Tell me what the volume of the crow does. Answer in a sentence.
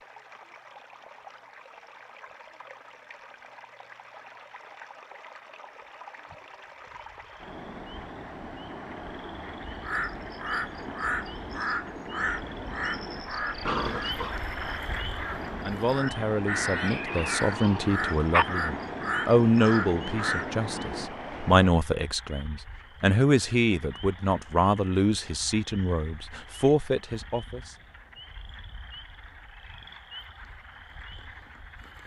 The volume of the crow stays about the same.